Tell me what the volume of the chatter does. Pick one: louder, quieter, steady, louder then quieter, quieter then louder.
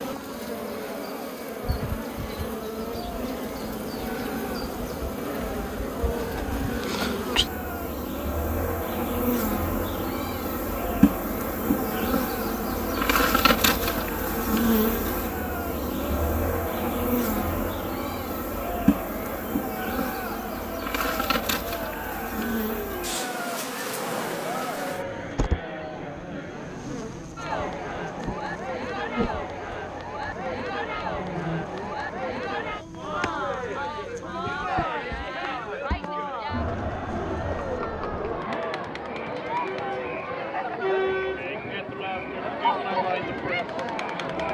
louder.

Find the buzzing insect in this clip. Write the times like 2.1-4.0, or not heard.
0.0-37.8.